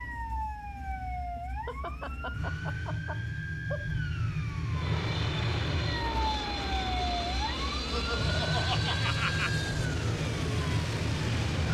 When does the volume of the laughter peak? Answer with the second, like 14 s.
9 s.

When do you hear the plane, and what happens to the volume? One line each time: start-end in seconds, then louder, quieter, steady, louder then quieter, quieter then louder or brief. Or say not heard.
4.7-11.6 steady.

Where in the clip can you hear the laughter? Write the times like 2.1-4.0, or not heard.
1.4-3.9, 7.9-9.5.